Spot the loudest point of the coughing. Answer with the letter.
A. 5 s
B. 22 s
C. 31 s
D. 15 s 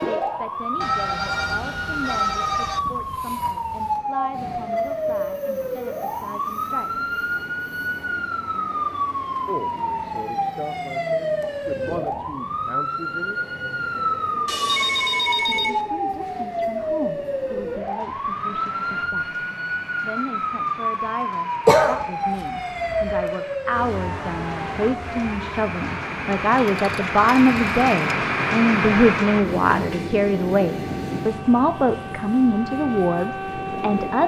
B.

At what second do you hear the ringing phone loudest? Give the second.
15 s.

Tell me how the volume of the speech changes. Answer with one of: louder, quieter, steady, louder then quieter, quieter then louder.
louder.